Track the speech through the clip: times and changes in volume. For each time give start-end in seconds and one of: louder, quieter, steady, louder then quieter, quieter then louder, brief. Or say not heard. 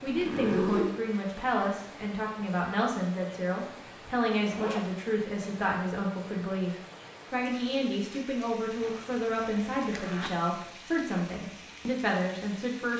0.0-12.9 steady.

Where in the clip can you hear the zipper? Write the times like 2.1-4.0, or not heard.
0.1-0.9, 4.5-5.0, 8.8-10.3.